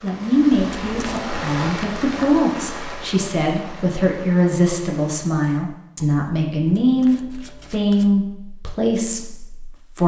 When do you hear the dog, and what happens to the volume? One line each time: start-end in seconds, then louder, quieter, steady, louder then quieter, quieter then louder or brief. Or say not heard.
not heard.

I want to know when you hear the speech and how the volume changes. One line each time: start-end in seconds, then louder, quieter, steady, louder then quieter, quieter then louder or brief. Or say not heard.
0.0-10.0 steady.